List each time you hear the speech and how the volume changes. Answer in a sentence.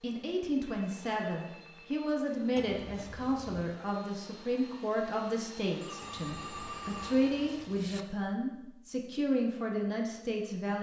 The speech can be heard from 0.0 to 10.7 s, at a steady volume.